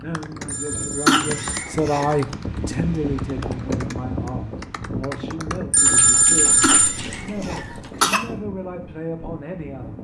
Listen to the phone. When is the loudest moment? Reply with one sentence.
The volume of the phone peaks at 6 seconds.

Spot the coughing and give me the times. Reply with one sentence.
The coughing can be heard from 1.1 to 2.2 s and from 6.6 to 8.2 s.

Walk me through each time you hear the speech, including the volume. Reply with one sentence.
The speech can be heard from 0.0 to 9.9 s, getting quieter.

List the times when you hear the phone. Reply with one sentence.
The phone can be heard from 0.5 to 1.5 s and from 5.7 to 7.0 s.